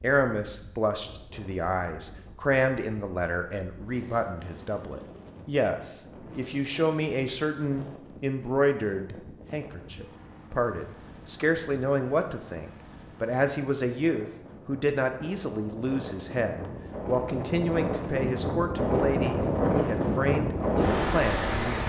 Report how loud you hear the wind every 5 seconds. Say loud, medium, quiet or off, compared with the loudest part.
quiet, quiet, quiet, loud, loud.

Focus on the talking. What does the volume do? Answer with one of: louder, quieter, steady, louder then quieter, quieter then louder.
steady.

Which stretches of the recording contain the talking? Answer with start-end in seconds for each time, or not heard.
0.0-21.8.